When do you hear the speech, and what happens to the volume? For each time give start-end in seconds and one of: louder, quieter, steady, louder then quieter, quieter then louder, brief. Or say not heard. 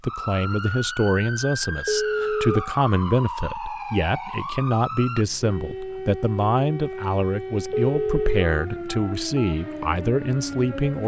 0.0-11.0 steady.